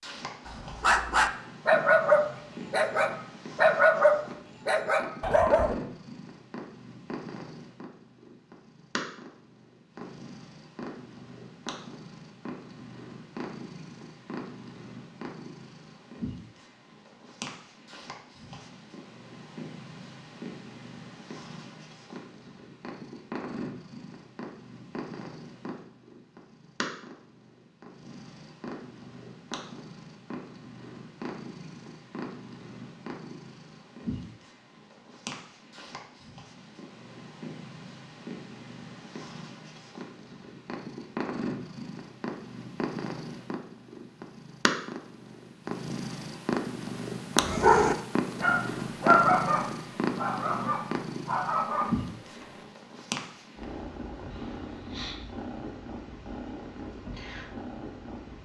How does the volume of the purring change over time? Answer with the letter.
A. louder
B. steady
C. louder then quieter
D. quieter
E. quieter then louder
A.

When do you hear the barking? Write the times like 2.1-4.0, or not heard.
0.5-5.8, 47.4-52.6.